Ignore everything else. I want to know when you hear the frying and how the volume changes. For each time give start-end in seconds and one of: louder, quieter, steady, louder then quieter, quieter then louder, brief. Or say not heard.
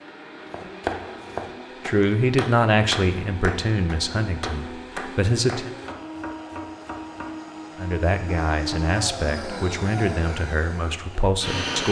not heard.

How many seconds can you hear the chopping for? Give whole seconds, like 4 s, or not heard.
7 s.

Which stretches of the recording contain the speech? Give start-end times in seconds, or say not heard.
1.9-5.7, 7.8-11.8.